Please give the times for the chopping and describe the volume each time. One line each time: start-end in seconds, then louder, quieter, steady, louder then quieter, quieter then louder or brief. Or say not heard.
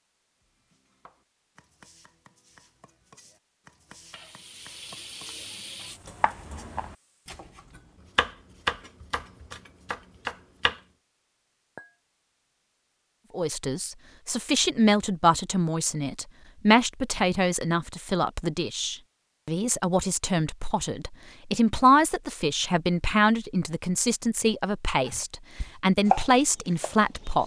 0.6-10.8 louder
25.1-27.4 brief.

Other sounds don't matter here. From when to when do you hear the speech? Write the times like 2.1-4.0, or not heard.
13.3-27.4.